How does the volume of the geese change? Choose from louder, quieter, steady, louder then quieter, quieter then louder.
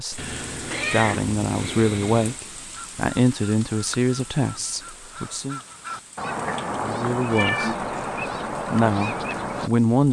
louder.